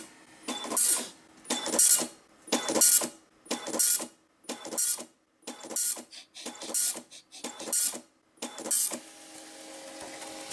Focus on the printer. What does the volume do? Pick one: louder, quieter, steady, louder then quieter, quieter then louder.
quieter.